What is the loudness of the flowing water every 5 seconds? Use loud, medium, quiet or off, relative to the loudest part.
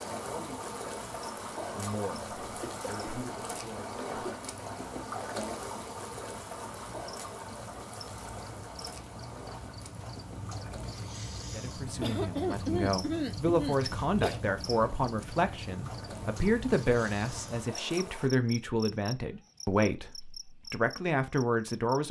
loud, loud, medium, medium, off.